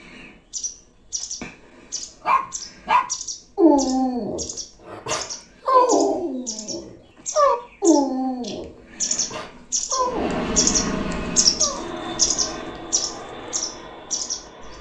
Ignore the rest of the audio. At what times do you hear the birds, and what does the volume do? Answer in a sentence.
You can hear the birds from 0.0 to 14.7 s, getting louder.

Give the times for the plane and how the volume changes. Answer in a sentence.
The plane can be heard from 10.0 to 14.7 s, getting quieter.